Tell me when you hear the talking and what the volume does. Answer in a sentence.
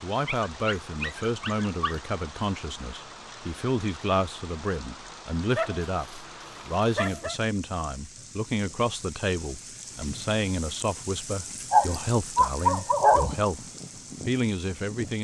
The talking can be heard from 0.0 to 13.7 s, at a steady volume; and briefly from 14.2 to 15.1 s.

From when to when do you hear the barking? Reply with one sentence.
The barking can be heard from 0.2 to 2.0 s, from 5.5 to 7.3 s and from 11.6 to 13.3 s.